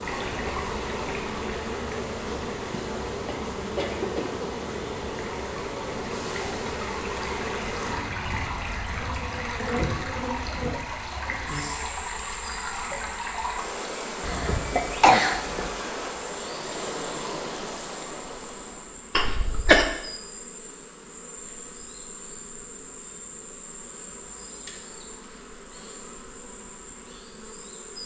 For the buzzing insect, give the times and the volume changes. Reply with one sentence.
You can hear the buzzing insect from 0.0 to 28.0 s, getting quieter.